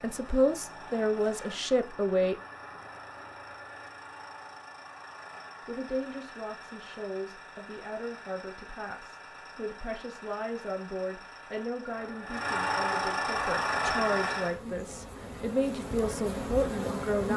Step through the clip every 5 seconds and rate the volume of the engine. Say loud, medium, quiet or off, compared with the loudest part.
quiet, quiet, loud, off.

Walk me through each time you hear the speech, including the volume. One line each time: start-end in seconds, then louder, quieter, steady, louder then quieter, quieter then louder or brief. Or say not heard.
0.0-2.4 brief
5.7-17.3 louder.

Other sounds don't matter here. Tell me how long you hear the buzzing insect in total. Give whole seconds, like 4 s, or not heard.
4 s.